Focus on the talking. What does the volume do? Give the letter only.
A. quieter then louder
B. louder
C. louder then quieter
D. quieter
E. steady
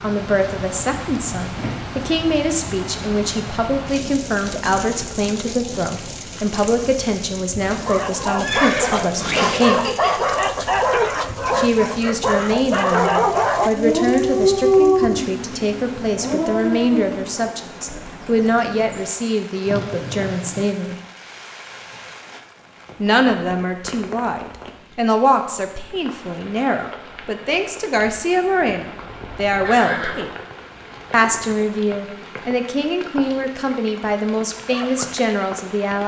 E.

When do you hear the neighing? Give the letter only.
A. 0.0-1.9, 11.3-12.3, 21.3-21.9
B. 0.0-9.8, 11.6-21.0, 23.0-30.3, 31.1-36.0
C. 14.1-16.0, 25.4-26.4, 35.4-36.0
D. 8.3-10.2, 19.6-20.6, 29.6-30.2
D.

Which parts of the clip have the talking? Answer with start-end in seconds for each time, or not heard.
0.0-9.8, 11.6-21.0, 23.0-30.3, 31.1-36.0.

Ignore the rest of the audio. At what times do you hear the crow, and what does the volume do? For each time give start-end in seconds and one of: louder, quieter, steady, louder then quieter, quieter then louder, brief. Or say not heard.
not heard.